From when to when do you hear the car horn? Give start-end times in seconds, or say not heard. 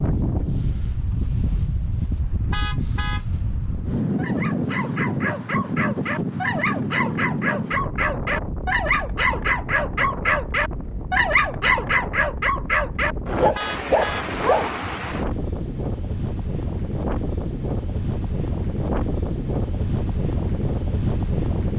2.5-3.2, 13.6-14.2.